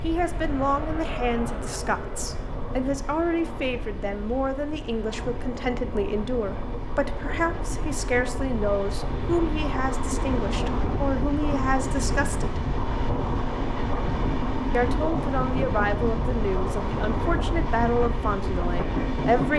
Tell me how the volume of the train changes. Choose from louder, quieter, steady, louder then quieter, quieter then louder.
louder.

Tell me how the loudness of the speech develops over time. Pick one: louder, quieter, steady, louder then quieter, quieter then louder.
steady.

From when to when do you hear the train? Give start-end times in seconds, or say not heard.
0.0-19.5.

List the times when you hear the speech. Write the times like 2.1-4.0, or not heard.
0.0-12.7, 14.7-19.5.